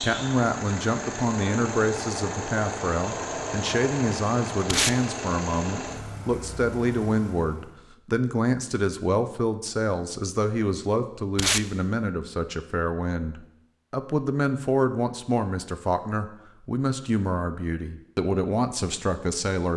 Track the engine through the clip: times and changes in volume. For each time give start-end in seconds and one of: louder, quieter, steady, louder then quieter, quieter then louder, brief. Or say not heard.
0.0-7.8 quieter.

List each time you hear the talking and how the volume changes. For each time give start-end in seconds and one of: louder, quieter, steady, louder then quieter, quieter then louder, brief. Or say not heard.
0.0-19.7 steady.